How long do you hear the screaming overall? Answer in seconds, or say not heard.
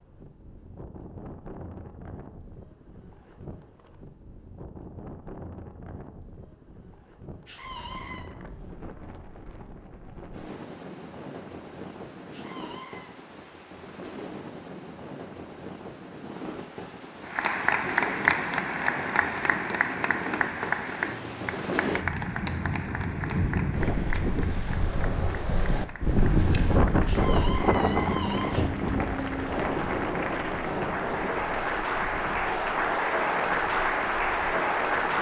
3 s.